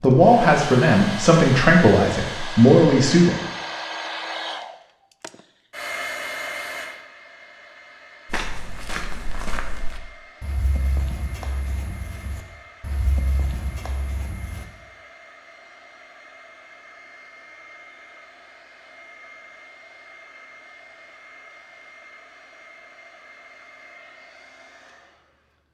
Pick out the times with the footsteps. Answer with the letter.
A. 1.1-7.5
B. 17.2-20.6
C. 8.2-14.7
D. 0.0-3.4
C.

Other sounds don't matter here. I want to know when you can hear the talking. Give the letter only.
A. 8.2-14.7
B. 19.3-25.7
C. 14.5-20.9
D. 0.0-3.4
D.